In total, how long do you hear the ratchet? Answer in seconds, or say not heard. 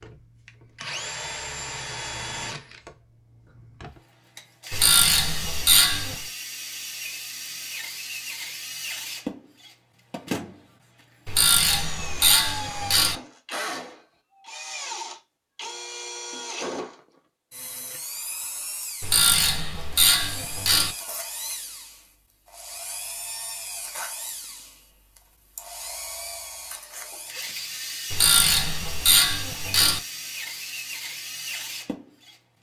7 s.